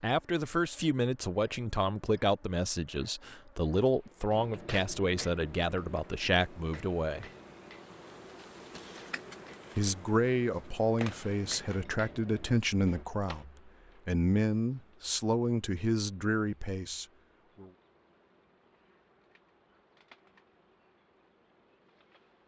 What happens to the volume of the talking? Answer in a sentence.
The loudness of the talking stays about the same.